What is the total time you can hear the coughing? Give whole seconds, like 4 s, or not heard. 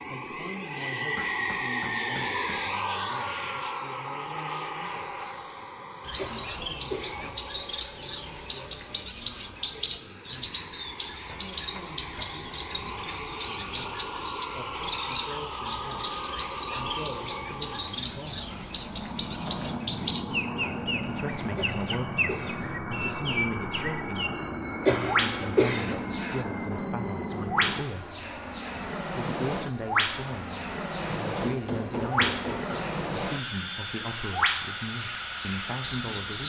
4 s.